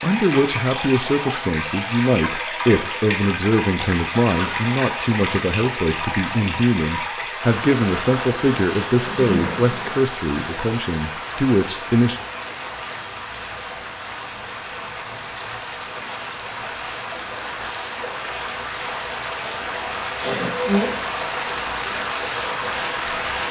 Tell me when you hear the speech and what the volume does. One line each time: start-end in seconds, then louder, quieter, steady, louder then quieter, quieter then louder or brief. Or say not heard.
0.0-12.2 steady.